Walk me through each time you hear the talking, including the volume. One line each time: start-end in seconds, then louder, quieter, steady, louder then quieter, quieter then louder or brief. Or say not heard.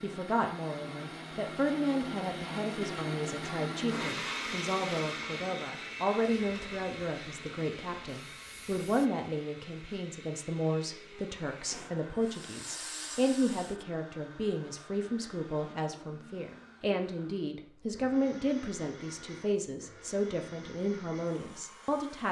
0.0-22.2 steady.